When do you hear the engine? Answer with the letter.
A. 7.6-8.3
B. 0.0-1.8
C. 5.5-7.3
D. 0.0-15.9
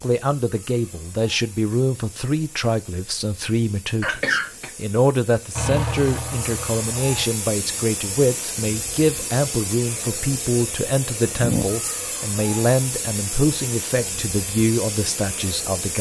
C.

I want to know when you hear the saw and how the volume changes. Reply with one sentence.
The saw can't be heard in this clip.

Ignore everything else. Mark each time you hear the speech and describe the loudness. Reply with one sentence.
The speech can be heard from 0.0 to 15.9 s, at a steady volume.